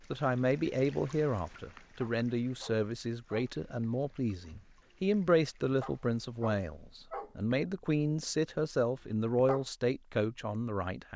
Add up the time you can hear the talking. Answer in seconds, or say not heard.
11 s.